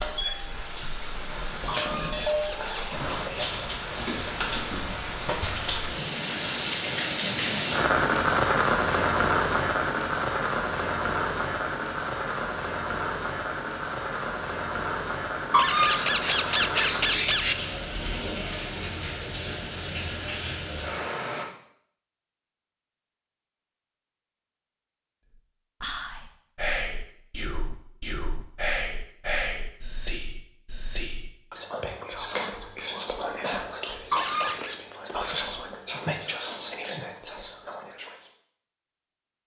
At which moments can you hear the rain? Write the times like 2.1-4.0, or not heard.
0.0-21.4.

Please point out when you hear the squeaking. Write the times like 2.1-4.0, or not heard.
1.8-3.0, 15.5-17.6, 34.1-34.8.